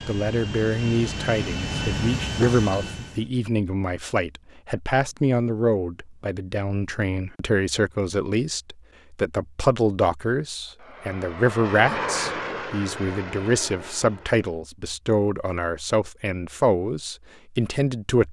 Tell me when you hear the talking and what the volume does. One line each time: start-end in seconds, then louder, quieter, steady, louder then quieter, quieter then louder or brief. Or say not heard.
0.1-18.2 steady.